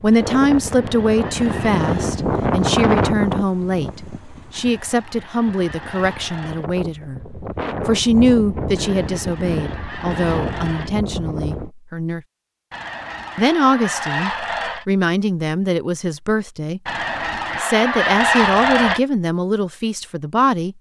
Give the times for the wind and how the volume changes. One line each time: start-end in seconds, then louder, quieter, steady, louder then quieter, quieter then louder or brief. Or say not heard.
0.0-11.7 quieter then louder.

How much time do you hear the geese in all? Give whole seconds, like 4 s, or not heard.
11 s.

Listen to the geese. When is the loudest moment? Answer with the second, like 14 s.
18 s.